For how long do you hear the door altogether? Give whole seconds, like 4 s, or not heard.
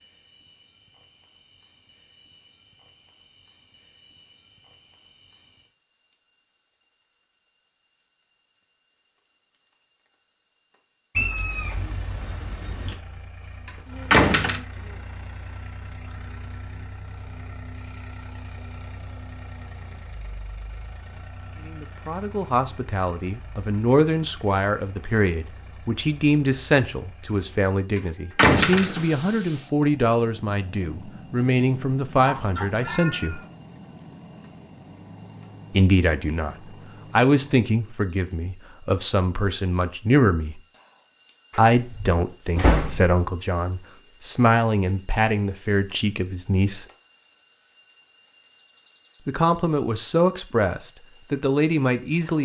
3 s.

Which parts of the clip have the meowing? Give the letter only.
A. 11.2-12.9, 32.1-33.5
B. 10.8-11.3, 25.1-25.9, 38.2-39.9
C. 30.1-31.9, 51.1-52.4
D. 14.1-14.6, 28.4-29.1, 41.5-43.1
A.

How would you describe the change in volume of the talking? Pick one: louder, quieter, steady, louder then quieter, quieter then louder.
steady.